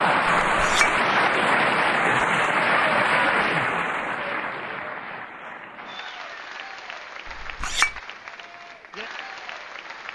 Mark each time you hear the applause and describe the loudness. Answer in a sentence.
You can hear the applause from 0.0 to 10.1 s, getting quieter.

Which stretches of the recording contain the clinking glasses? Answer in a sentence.
You can hear the clinking glasses from 0.5 to 1.0 s and from 7.2 to 8.0 s.